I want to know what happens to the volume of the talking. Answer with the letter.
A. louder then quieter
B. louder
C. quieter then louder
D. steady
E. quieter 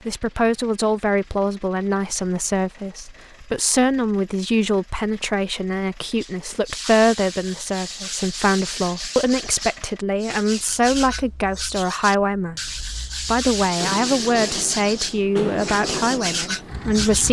D.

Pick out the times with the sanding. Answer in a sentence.
You can hear the sanding from 6.2 to 17.2 s.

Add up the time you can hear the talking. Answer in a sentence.
You can hear the talking for 17 seconds altogether.